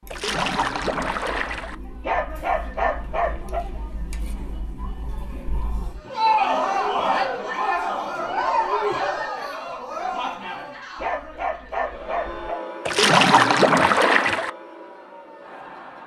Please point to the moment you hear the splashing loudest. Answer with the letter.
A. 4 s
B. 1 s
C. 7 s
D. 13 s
D.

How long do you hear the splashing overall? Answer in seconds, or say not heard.
3 s.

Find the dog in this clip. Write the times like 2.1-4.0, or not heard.
2.0-3.6, 10.9-12.6.